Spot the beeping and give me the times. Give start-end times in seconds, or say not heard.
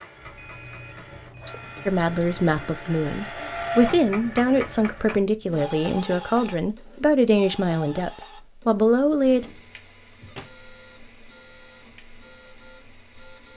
0.3-1.9.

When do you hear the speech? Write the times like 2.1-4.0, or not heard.
1.9-9.4.